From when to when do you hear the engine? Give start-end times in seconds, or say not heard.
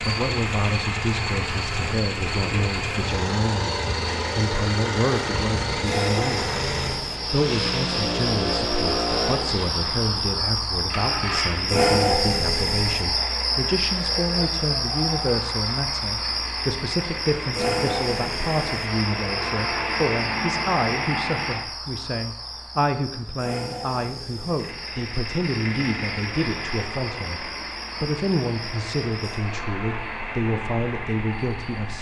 0.0-21.6, 24.5-31.9.